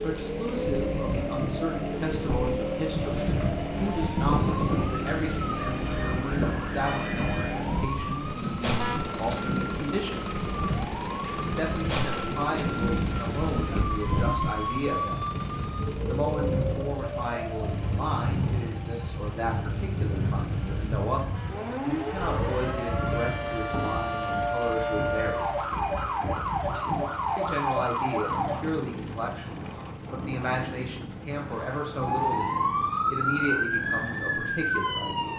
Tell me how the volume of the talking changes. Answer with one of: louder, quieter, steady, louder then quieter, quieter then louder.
steady.